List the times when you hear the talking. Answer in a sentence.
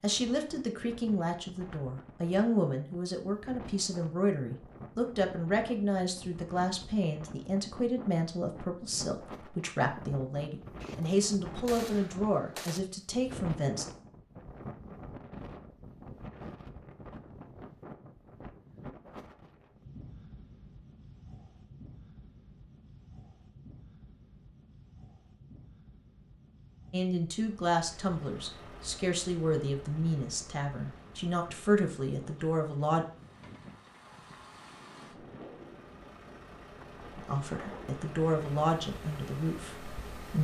The talking can be heard from 0.0 to 13.8 s, from 26.9 to 33.0 s and from 37.1 to 40.3 s.